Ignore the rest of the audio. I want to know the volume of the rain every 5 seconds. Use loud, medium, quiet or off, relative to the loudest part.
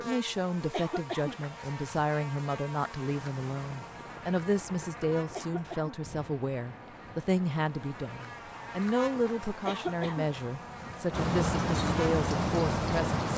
quiet, quiet, loud.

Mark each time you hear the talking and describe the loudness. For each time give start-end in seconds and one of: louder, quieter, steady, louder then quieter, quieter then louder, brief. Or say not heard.
0.0-13.2 steady.